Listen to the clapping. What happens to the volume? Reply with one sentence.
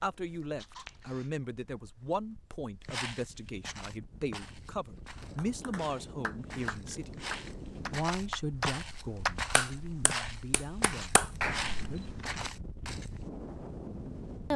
The loudness of the clapping goes up.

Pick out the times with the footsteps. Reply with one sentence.
The footsteps can be heard from 2.8 to 13.2 s.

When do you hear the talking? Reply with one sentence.
You can hear the talking from 0.0 to 7.2 s and from 7.9 to 12.2 s.